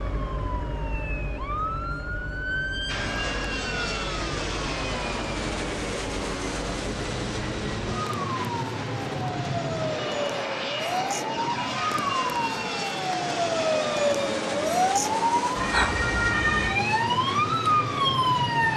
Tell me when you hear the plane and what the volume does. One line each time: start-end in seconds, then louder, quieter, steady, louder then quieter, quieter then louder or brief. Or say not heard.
2.9-18.7 steady.